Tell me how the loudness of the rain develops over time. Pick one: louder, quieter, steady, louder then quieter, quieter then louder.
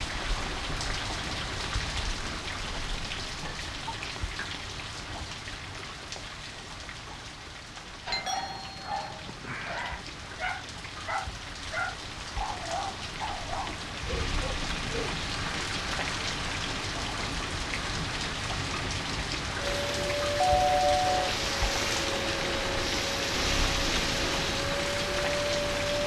quieter then louder.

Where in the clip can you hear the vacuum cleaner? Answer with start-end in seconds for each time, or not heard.
19.6-26.0.